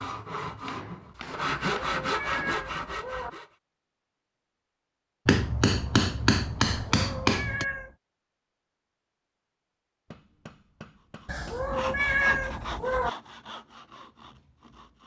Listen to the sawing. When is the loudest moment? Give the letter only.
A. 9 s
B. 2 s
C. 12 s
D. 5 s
B.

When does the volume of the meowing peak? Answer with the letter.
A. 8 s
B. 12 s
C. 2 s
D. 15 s
B.